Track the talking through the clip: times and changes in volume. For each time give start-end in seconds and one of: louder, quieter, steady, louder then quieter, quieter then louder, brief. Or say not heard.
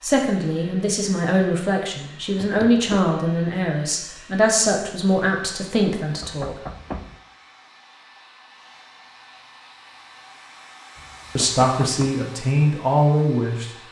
0.0-6.6 steady
11.3-13.7 brief.